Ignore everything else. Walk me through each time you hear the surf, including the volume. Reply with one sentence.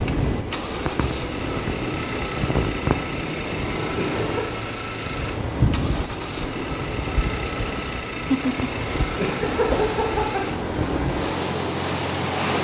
The surf can be heard from 0.0 to 12.5 s, at a steady volume.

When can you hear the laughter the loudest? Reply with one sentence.
The loudest moment of the laughter is at 10 seconds.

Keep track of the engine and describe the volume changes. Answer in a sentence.
The loudness of the engine stays about the same.